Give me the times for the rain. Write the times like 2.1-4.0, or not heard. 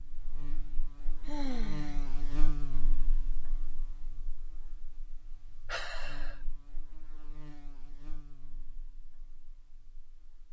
not heard.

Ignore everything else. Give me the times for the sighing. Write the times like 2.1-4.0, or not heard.
1.2-2.1, 5.7-6.3.